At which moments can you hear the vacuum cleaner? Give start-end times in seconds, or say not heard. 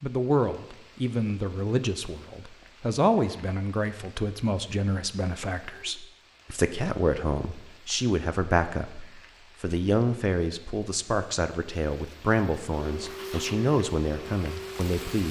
12.7-15.2.